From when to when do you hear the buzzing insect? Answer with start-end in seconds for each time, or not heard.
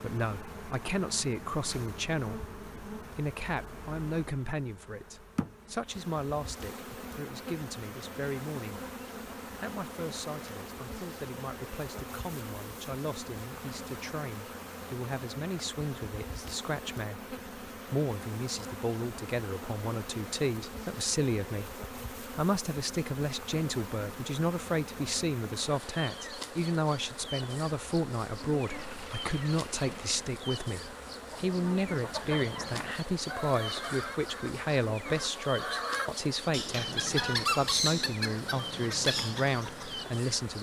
0.0-40.5.